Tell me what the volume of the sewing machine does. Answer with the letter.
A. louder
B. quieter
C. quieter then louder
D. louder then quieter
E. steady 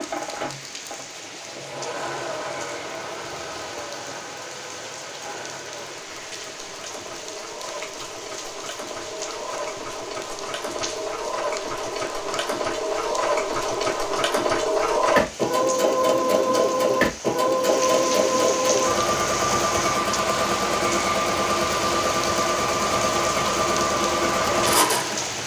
A.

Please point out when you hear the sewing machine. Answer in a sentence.
The sewing machine can be heard from 0.0 to 25.4 s.